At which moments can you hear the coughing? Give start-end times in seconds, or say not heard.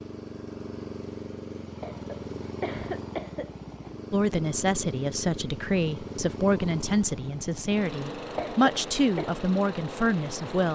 1.8-3.5, 8.3-9.3.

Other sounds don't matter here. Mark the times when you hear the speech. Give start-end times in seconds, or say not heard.
4.1-10.7.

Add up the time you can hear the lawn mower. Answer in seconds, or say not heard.
11 s.